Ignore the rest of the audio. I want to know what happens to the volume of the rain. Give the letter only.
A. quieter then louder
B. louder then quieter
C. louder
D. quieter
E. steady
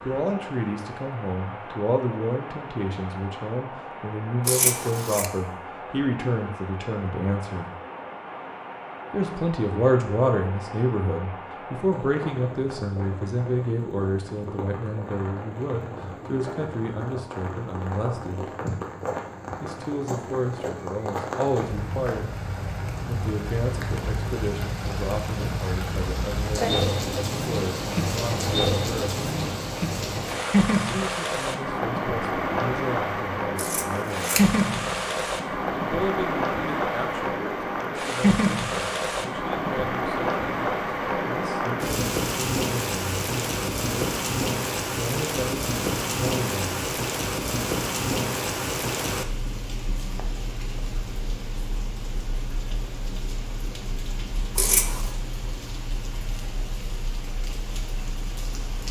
B.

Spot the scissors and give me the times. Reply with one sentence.
The scissors can be heard from 4.5 to 5.3 s, from 33.5 to 34.5 s and from 54.5 to 55.1 s.